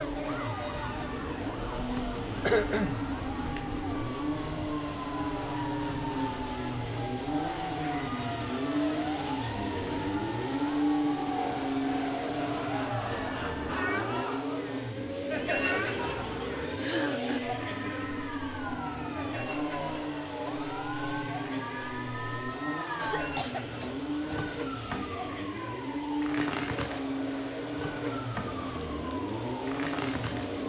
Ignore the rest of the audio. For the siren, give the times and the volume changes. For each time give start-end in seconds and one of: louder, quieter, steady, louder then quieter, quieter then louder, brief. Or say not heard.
0.0-30.6 steady.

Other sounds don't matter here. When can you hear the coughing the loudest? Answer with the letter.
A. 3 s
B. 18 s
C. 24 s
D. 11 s
A.